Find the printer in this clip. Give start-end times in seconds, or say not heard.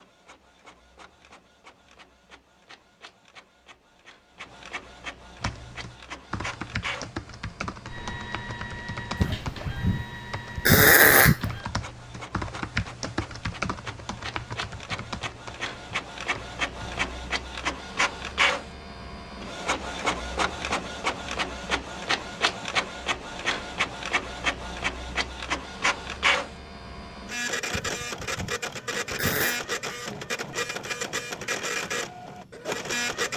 0.0-33.3.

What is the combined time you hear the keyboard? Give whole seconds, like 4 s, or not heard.
12 s.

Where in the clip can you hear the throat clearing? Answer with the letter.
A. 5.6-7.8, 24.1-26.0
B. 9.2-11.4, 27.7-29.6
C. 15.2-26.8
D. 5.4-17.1
B.